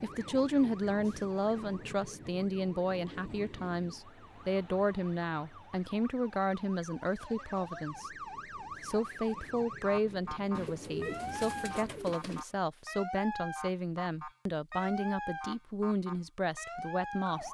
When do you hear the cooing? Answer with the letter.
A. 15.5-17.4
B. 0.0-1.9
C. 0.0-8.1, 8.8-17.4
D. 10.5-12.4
D.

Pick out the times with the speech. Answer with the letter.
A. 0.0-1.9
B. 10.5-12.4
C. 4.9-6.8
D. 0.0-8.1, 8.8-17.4
D.